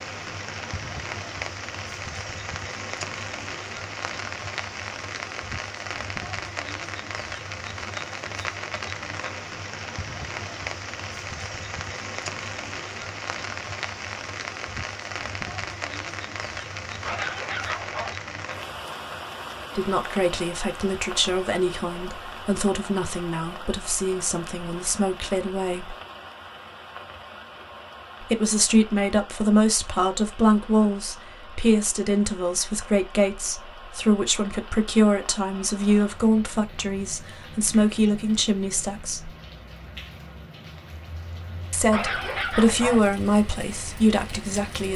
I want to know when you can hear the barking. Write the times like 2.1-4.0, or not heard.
17.1-18.1, 41.9-43.0.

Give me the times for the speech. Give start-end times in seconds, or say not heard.
19.8-25.9, 28.2-39.3, 41.7-44.9.